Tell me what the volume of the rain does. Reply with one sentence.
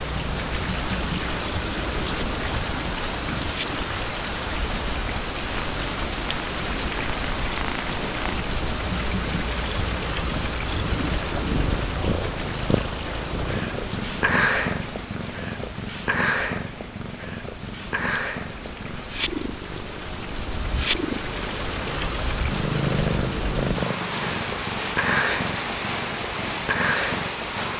The loudness of the rain goes down, then up.